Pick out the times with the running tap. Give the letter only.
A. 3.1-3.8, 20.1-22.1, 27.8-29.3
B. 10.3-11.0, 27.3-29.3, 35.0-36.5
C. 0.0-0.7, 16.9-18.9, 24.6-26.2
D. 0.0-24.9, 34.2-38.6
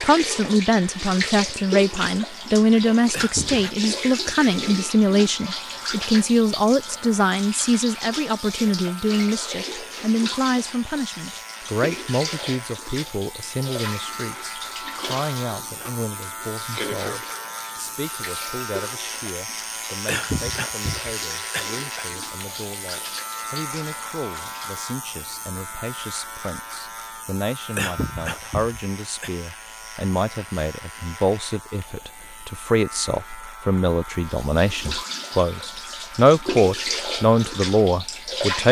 D.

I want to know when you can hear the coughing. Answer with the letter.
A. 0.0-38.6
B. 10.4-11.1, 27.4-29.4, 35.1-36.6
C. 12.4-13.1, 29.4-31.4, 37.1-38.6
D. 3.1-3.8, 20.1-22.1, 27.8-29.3
D.